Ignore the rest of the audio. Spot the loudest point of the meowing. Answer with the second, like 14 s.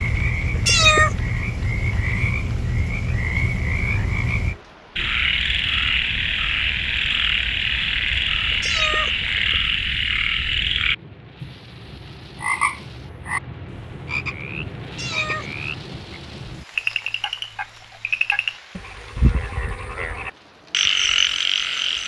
1 s.